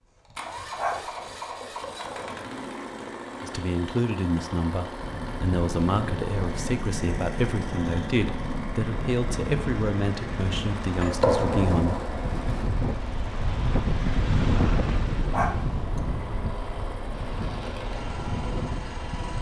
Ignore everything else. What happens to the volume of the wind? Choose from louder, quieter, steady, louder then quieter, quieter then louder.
louder then quieter.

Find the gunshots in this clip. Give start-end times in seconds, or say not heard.
11.0-12.7.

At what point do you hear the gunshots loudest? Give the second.
11 s.